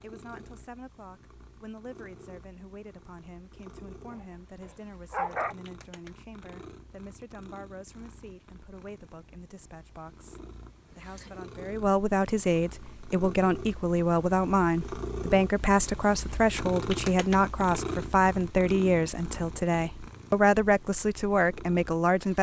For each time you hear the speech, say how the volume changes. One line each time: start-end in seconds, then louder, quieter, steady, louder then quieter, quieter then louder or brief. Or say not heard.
0.0-22.3 louder.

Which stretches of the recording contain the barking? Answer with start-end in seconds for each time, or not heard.
4.1-5.5.